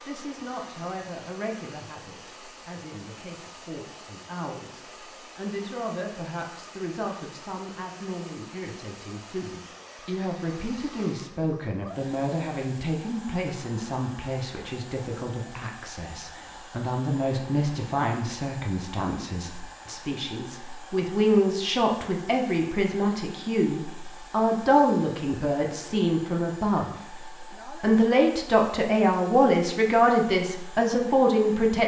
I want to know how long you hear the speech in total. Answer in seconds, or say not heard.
31 s.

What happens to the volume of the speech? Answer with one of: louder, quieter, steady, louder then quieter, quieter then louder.
louder.